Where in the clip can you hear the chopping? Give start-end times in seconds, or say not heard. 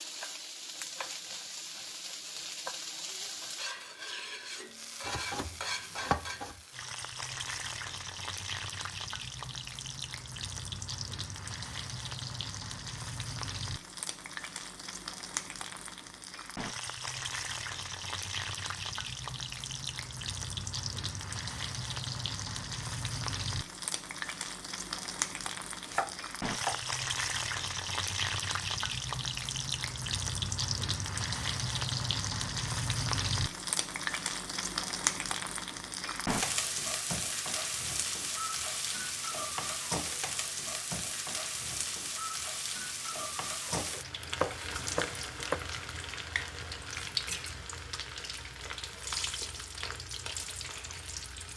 5.0-6.6, 25.8-26.8, 43.6-45.6.